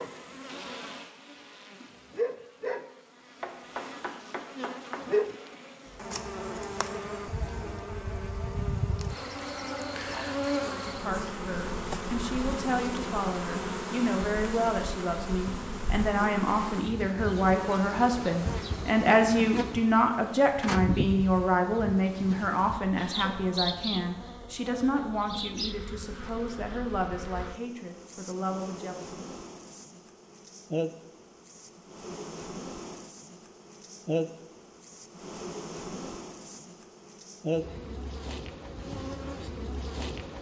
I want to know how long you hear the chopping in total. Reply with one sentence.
The chopping can be heard for 2 seconds in total.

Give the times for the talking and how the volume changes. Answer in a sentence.
You can hear the talking from 10.5 to 29.1 s, getting louder then quieter.